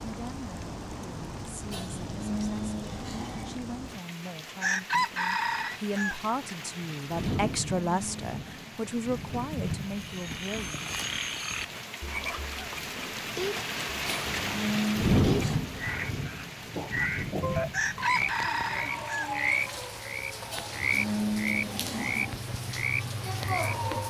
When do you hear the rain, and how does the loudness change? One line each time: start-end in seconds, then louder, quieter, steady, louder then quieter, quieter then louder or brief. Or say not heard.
0.0-24.0 louder then quieter.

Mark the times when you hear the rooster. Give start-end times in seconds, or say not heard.
4.6-6.2, 17.7-19.3.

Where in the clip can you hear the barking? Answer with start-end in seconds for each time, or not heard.
not heard.